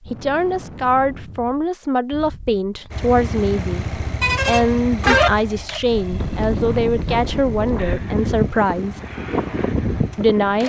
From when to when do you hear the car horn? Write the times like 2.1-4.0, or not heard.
4.2-5.3.